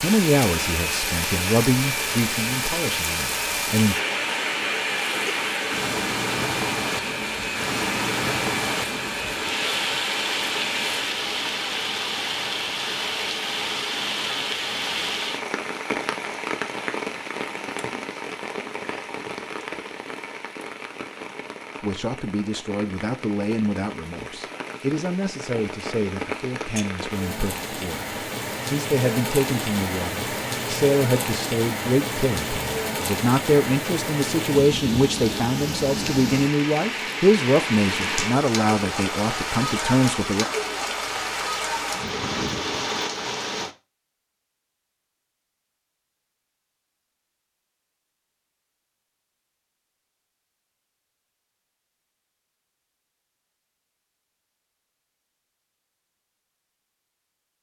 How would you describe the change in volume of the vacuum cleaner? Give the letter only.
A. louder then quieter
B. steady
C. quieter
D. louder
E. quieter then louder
B.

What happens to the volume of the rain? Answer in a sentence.
The volume of the rain goes down, then up.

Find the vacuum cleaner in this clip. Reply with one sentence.
The vacuum cleaner can be heard from 0.0 to 11.1 s.